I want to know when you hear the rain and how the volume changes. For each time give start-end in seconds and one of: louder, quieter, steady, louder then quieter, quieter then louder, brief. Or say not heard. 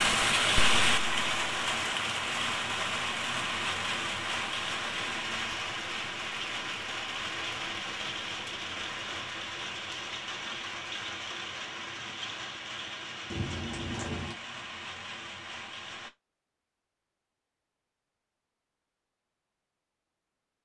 0.0-16.1 quieter.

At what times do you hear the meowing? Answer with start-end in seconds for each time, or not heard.
13.2-14.3.